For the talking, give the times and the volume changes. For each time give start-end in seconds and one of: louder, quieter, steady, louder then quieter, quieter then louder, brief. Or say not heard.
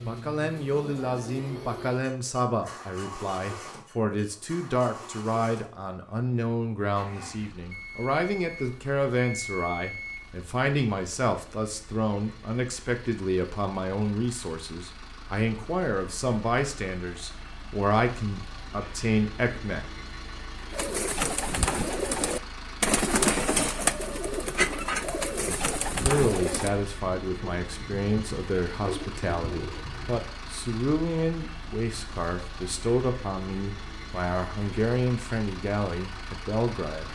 0.0-19.9 steady
25.4-37.0 steady.